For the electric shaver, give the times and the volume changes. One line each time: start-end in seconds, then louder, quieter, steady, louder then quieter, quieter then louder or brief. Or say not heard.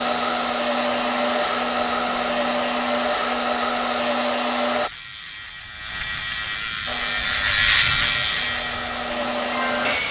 0.0-10.0 louder.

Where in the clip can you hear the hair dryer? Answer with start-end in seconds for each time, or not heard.
0.0-4.9, 6.8-10.0.